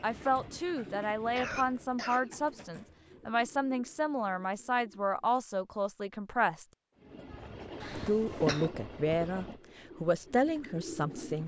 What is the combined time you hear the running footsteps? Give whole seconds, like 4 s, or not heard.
not heard.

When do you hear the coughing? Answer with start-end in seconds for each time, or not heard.
1.4-3.1, 7.8-8.7.